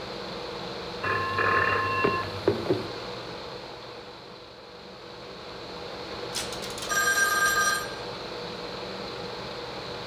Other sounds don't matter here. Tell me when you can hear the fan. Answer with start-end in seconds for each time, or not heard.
0.0-10.0.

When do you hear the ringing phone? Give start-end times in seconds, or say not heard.
1.0-2.9, 6.3-7.8.